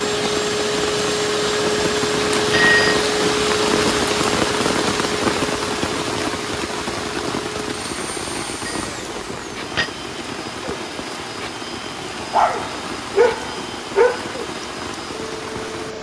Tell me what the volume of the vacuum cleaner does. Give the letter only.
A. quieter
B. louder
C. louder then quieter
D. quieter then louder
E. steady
A.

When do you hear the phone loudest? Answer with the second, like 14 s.
3 s.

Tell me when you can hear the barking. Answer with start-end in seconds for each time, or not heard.
12.2-14.3.